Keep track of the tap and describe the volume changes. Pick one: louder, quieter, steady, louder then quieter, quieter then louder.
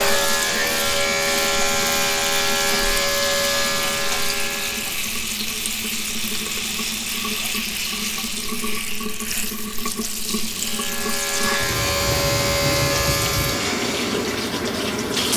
steady.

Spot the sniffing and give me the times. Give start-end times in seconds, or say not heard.
not heard.